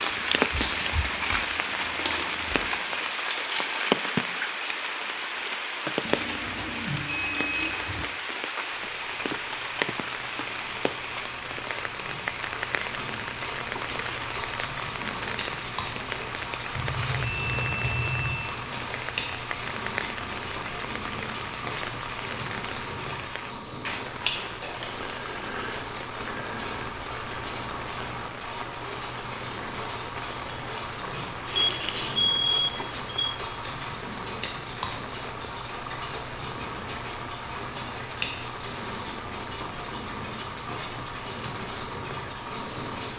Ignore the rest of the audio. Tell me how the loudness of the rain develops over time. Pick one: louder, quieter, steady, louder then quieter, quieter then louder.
quieter.